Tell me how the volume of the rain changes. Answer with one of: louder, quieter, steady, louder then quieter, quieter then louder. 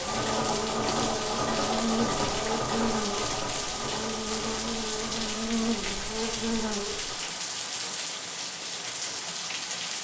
steady.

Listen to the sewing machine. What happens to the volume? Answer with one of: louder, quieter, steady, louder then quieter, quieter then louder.
quieter.